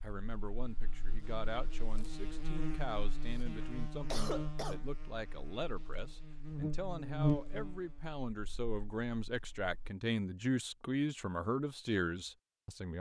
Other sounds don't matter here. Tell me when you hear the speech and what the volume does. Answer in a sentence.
The speech can be heard from 0.0 to 12.9 s, getting louder.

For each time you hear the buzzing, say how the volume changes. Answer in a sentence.
The buzzing can be heard from 0.1 to 9.9 s, getting louder then quieter.